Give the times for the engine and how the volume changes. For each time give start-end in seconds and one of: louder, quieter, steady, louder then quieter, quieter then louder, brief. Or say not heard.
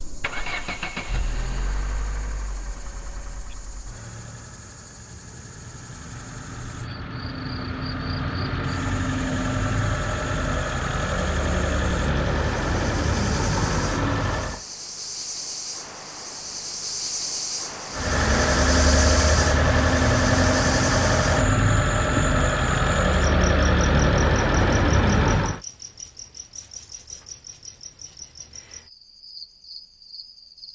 0.0-14.7 quieter then louder
17.9-25.6 steady.